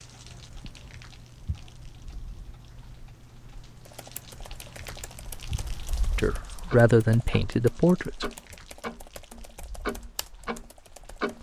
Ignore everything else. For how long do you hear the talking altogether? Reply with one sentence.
The talking can be heard for 2 seconds in total.